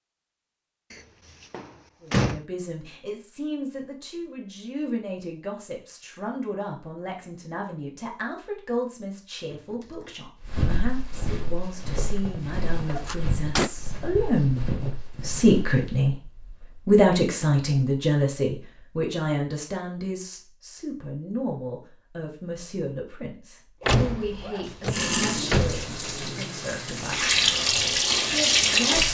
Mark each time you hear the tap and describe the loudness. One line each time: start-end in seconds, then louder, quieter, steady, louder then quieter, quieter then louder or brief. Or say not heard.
24.9-29.0 louder.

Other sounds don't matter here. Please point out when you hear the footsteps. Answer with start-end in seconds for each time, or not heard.
10.4-16.1.